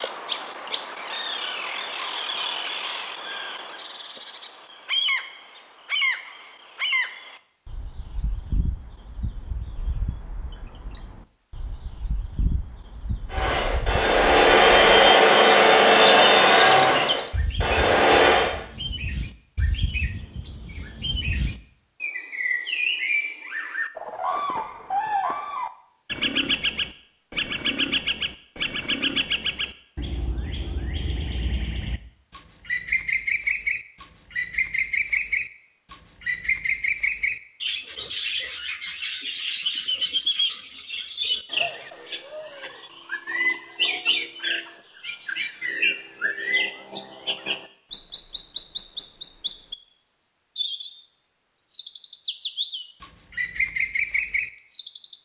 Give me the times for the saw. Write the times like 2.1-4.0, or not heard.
13.3-18.5.